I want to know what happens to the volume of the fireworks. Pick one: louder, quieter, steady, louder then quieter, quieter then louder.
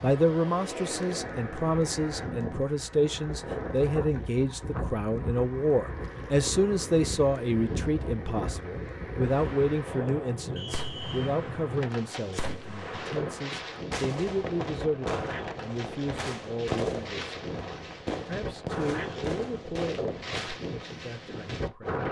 louder.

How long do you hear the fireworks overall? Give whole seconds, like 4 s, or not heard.
11 s.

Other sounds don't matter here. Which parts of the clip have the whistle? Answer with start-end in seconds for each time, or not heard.
10.6-11.3.